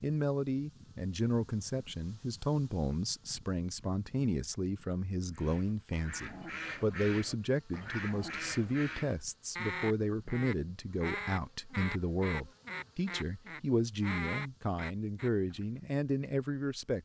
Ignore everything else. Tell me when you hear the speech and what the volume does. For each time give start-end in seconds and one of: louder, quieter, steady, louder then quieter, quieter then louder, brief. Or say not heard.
0.0-17.0 steady.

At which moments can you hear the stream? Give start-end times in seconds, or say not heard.
not heard.